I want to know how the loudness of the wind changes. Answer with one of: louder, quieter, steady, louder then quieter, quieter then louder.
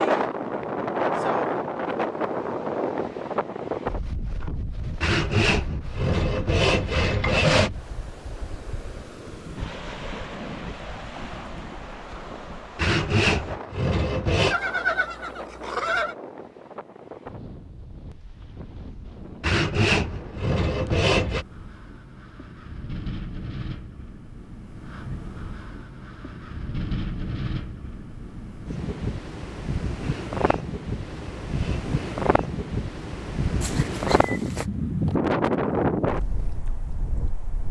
quieter then louder.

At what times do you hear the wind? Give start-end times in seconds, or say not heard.
0.0-37.6.